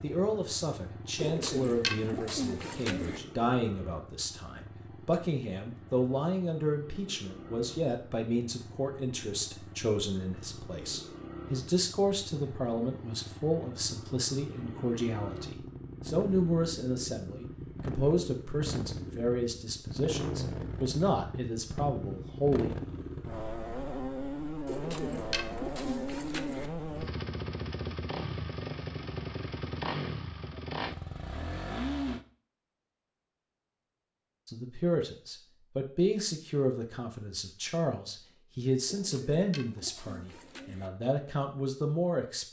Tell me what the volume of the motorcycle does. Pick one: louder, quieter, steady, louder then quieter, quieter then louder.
louder.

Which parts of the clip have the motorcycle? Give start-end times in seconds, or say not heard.
0.0-32.2.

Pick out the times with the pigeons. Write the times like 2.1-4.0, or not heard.
1.1-3.2, 24.6-26.7, 38.9-40.9.